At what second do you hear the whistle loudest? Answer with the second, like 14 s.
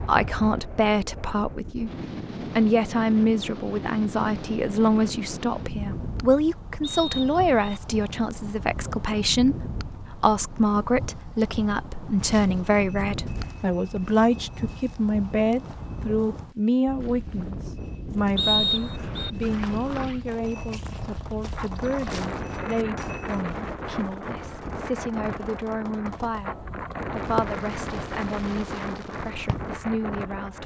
19 s.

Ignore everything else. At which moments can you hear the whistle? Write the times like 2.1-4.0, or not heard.
6.8-7.8, 18.4-19.3.